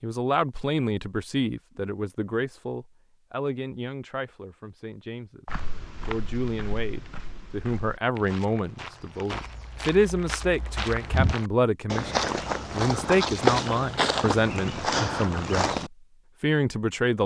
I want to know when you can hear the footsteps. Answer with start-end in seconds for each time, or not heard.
5.5-15.9.